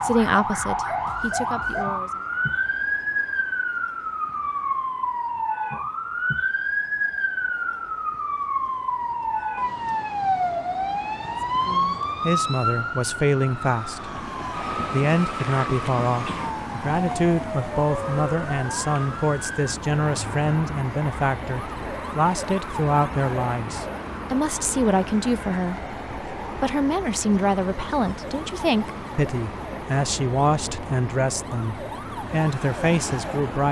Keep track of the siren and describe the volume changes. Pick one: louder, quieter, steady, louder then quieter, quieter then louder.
quieter.